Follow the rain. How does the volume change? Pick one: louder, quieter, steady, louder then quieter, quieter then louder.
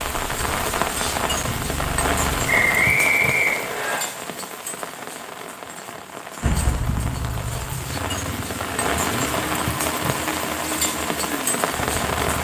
quieter then louder.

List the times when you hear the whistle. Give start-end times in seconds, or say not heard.
2.5-4.0.